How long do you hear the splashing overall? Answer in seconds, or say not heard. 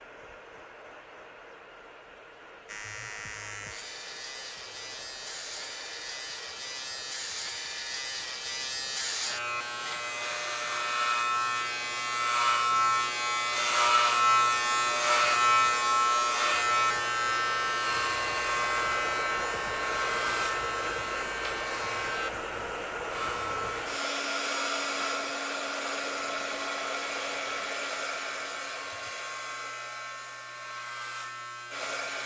not heard.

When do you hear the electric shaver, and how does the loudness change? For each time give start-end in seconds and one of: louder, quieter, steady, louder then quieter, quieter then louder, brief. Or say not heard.
2.6-32.2 louder then quieter.